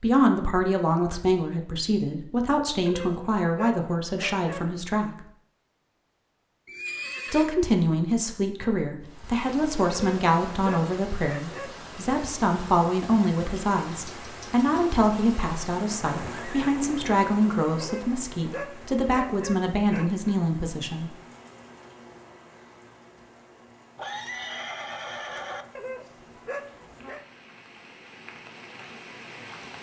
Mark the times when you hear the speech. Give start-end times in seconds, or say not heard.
0.0-5.2, 7.3-21.1.